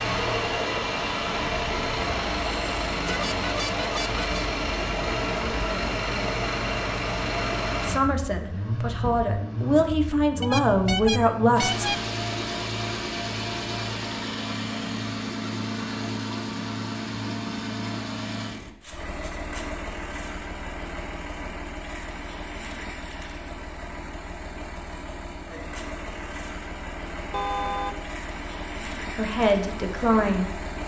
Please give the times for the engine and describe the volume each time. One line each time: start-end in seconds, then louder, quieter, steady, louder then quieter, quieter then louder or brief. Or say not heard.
0.0-30.8 quieter.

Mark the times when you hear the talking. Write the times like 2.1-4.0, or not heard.
7.8-11.8, 29.1-30.6.